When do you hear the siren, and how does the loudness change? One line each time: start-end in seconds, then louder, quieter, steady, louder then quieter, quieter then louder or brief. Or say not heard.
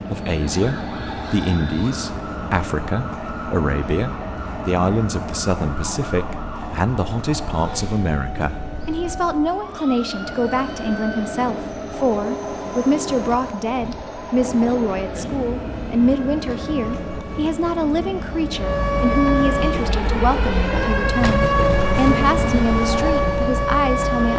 0.2-24.3 louder.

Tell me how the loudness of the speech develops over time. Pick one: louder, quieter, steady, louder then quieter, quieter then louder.
steady.